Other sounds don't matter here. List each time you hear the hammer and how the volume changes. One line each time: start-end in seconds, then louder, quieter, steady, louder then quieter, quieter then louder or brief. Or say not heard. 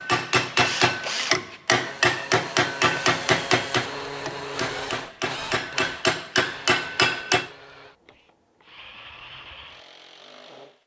0.0-7.5 quieter then louder.